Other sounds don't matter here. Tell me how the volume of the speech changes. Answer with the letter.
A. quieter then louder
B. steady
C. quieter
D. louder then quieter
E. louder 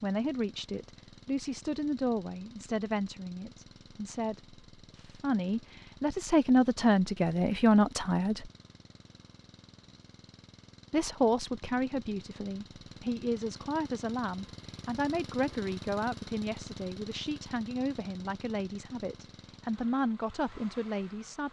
D.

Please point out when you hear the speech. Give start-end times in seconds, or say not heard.
0.0-8.4, 10.9-21.4.